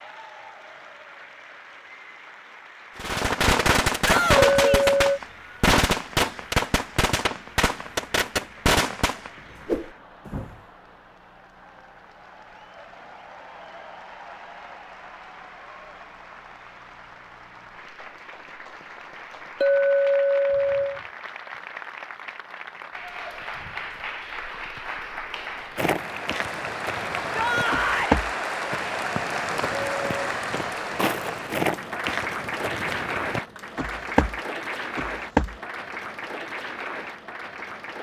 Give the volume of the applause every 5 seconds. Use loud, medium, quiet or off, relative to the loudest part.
quiet, quiet, quiet, quiet, medium, loud, loud, medium.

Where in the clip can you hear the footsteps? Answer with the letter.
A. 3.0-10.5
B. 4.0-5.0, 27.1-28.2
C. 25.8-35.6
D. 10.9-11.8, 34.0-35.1
C.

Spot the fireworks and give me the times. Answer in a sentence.
You can hear the fireworks from 3.0 to 10.5 s.